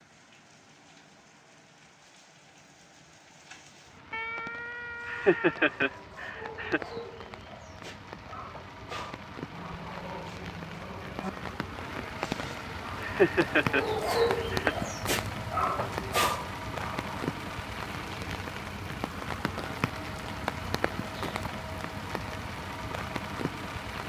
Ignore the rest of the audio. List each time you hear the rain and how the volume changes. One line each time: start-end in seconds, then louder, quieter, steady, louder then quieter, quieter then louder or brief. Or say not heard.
0.0-24.0 louder.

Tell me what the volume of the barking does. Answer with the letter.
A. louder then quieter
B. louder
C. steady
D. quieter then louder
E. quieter
B.